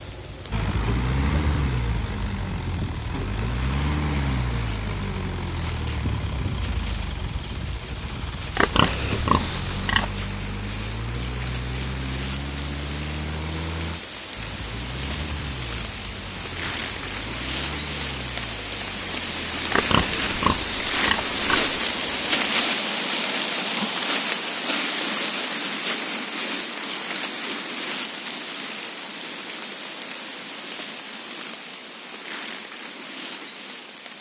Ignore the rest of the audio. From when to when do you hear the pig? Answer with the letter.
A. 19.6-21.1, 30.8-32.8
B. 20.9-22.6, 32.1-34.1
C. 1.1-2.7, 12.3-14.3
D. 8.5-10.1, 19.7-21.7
D.